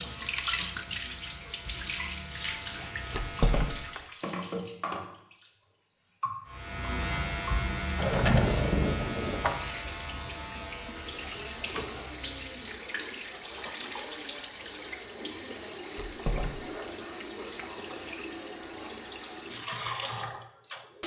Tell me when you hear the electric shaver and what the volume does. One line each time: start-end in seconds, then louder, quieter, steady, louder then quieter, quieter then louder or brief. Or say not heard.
0.0-4.1 louder
6.5-12.8 quieter.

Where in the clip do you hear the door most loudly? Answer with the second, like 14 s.
8 s.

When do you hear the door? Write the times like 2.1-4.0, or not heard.
3.1-4.0, 8.0-9.6, 15.9-16.9.